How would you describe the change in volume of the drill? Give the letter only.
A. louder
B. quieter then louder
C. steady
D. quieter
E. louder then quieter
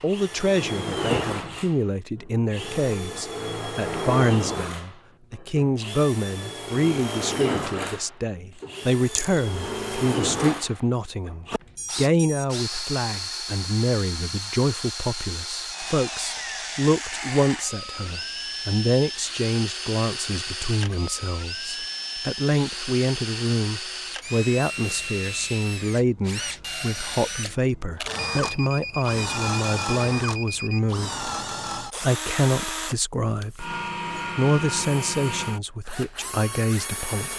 C.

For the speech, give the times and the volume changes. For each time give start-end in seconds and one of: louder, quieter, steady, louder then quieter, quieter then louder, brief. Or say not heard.
0.0-33.8 steady
34.4-37.3 brief.